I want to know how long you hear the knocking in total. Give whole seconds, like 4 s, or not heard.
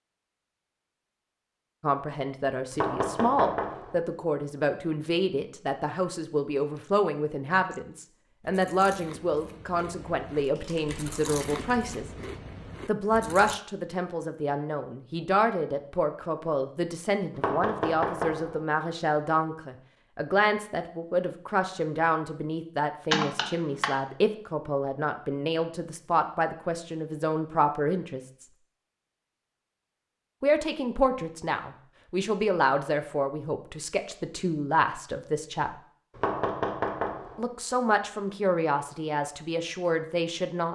4 s.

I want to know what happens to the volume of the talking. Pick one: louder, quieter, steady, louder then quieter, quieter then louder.
steady.